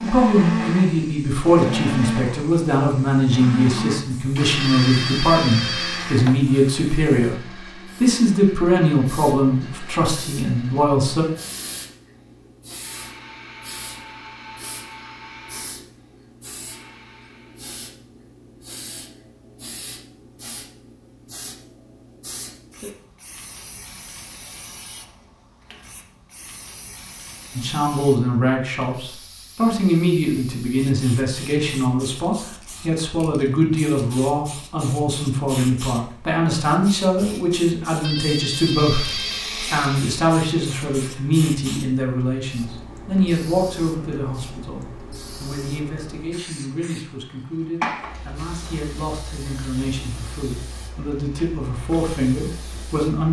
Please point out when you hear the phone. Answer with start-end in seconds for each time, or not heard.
4.6-6.5, 38.0-39.5.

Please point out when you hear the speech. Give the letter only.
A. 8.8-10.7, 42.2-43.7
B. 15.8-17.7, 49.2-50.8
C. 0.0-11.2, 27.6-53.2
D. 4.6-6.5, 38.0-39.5
C.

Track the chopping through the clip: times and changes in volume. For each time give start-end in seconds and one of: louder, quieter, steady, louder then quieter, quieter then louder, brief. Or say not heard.
not heard.